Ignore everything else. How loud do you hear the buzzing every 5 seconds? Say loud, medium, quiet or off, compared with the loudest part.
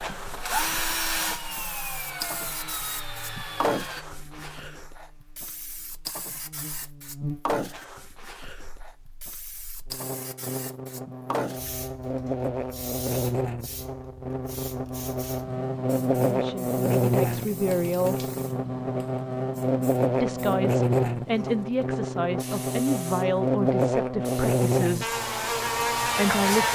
quiet, quiet, medium, loud, loud, loud.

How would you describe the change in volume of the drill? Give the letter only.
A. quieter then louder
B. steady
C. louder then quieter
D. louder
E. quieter
E.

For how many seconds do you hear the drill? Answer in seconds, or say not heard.
4 s.